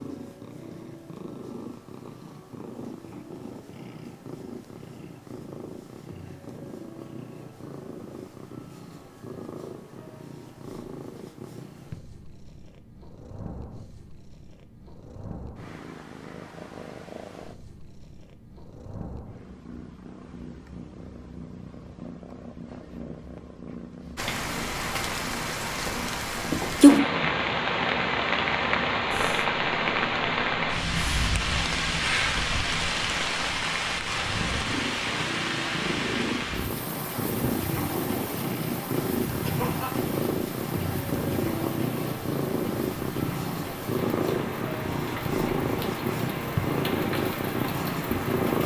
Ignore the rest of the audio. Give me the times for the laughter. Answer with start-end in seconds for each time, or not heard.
39.4-40.0.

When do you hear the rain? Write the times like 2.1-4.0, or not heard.
24.1-48.6.